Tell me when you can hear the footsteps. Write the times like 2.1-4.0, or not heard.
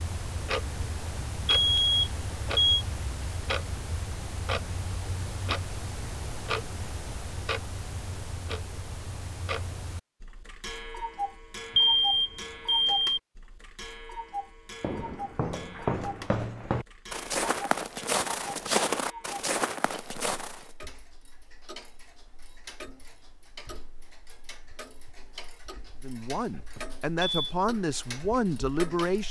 14.8-20.7.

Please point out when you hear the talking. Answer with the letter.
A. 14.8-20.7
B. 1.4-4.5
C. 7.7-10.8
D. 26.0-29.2
D.